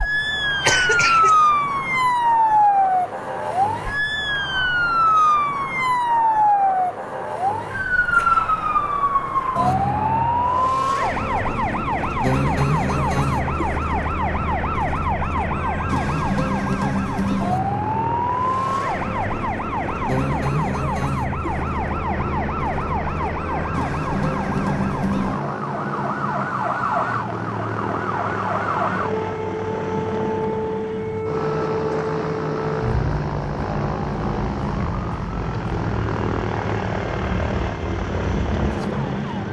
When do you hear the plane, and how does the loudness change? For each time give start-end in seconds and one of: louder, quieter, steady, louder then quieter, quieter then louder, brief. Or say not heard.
0.0-39.4 louder.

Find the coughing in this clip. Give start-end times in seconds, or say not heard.
0.6-1.4.